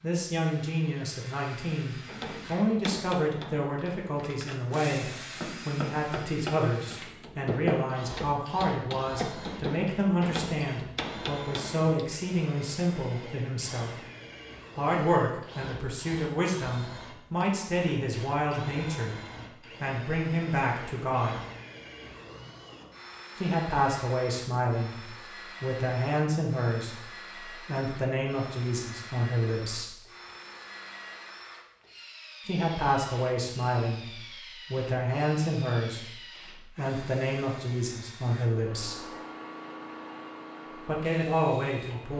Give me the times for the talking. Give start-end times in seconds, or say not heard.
0.0-14.1, 14.8-19.1, 19.8-21.4, 23.4-29.9, 32.5-39.0, 40.9-42.1.